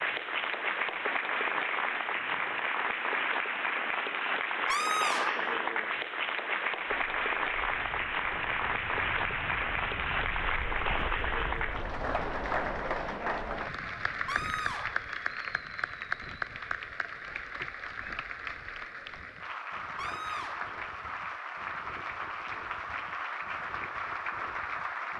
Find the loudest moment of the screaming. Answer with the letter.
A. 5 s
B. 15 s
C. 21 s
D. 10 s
A.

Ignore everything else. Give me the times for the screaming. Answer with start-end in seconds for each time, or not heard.
4.7-5.5, 14.2-15.1, 19.9-20.8.